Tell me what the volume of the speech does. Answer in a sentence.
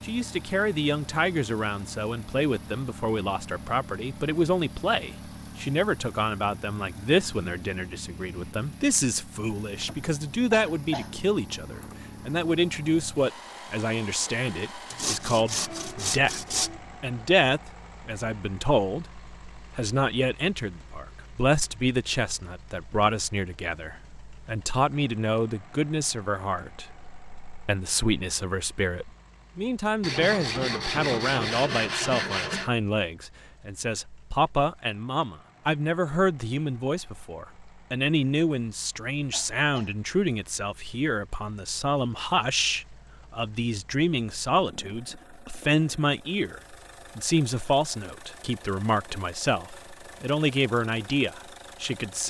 The loudness of the speech stays about the same.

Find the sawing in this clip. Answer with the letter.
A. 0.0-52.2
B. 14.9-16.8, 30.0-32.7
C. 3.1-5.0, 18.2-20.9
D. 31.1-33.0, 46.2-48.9
B.